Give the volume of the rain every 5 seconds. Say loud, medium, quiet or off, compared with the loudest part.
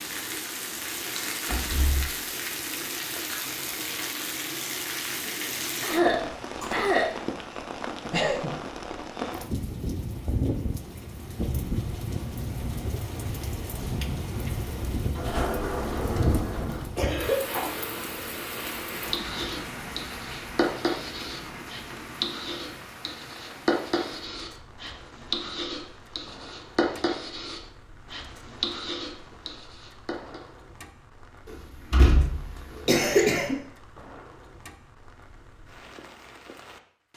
loud, loud, loud, loud, medium, quiet, quiet, quiet.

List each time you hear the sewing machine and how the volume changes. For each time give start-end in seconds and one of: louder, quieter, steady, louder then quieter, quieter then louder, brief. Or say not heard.
not heard.